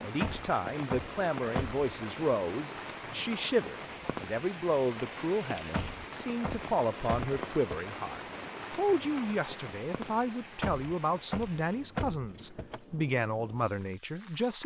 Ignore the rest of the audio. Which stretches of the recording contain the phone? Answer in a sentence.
The phone can't be heard in this clip.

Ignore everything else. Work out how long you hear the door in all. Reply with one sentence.
The door can be heard for 6 seconds in total.